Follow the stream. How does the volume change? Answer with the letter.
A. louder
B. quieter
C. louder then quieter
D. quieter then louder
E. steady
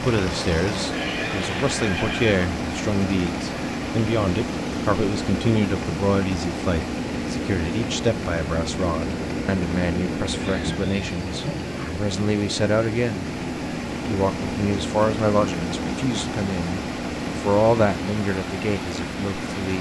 E.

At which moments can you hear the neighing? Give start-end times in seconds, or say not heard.
0.9-2.3, 10.3-11.9.